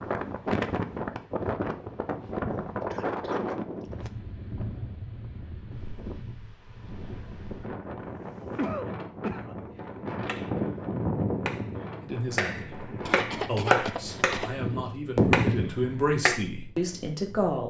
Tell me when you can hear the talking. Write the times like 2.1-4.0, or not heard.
12.0-17.6.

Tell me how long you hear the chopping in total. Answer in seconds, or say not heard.
7 s.